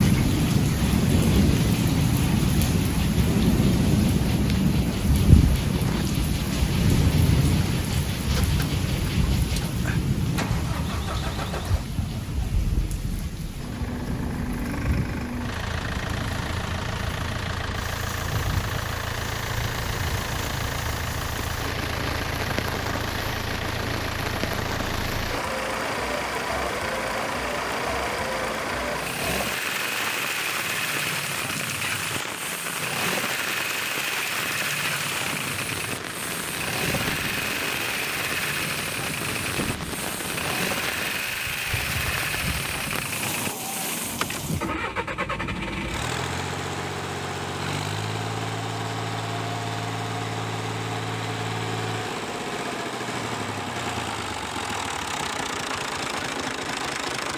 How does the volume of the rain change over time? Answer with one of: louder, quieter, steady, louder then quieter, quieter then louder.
quieter.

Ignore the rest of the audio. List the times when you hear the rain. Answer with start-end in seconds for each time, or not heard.
0.0-44.7.